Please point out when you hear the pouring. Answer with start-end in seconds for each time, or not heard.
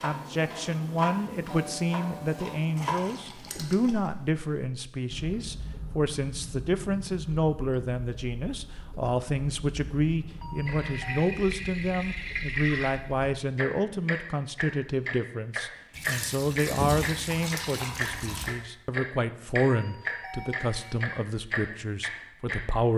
2.8-4.1, 10.7-12.9, 15.9-18.6.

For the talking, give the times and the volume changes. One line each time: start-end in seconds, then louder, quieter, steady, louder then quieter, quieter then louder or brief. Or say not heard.
0.0-22.9 steady.